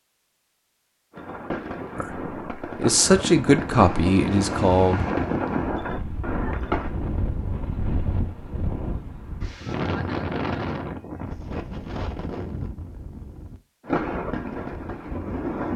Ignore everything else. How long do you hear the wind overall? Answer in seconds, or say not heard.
13 s.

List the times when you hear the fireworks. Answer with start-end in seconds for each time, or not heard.
1.1-6.9, 13.8-15.7.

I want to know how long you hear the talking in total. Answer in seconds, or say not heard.
3 s.